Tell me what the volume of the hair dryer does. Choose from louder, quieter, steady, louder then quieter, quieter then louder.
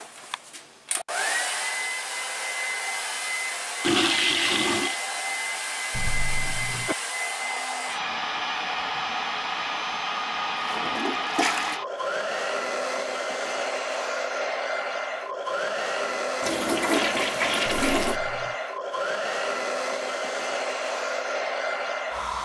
steady.